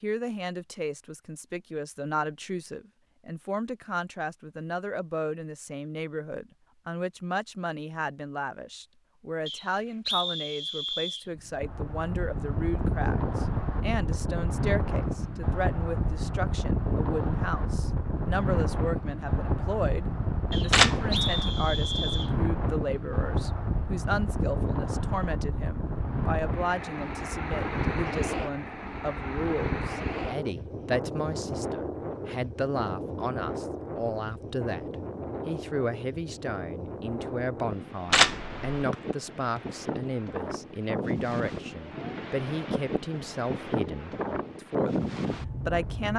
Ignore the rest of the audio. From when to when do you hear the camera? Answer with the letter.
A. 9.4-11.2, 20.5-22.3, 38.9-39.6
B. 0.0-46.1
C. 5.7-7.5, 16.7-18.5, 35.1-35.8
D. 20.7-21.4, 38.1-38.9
D.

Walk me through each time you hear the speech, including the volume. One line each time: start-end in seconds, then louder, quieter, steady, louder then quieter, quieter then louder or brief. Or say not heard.
0.0-46.1 steady.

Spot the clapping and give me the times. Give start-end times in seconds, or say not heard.
not heard.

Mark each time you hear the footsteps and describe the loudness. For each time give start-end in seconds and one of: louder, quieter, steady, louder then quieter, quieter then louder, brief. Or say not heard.
not heard.